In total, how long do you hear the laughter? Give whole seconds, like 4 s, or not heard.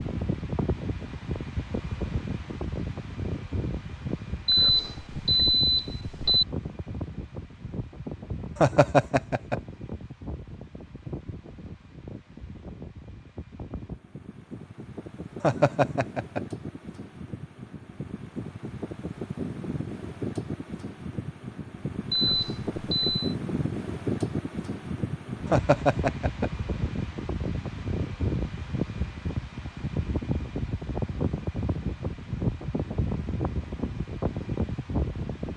3 s.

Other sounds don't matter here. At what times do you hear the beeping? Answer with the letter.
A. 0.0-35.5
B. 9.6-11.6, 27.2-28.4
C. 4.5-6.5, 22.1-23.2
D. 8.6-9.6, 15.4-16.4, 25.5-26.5
C.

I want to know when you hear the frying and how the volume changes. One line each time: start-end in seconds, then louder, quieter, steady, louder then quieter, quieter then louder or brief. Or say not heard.
not heard.